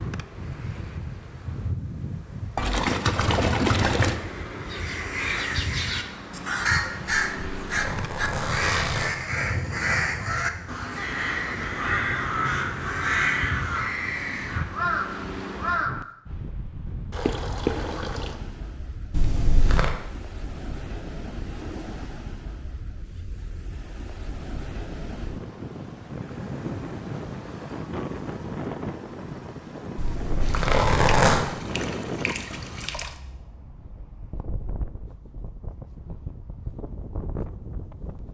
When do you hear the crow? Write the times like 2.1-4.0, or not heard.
4.7-16.1.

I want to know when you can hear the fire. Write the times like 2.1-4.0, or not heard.
not heard.